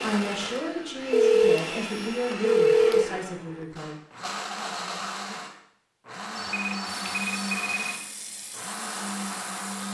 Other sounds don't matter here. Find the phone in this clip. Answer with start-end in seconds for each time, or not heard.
1.1-3.0, 6.3-7.8.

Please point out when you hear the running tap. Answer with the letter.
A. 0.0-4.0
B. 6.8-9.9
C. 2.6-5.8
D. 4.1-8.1
B.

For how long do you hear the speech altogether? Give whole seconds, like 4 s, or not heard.
4 s.